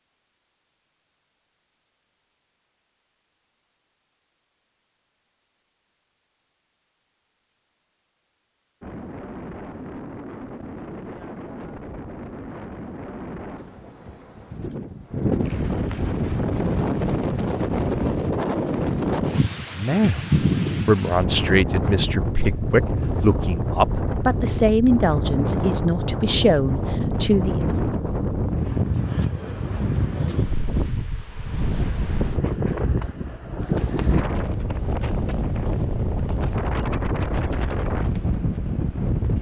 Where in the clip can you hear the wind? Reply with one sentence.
You can hear the wind from 8.8 to 39.3 s.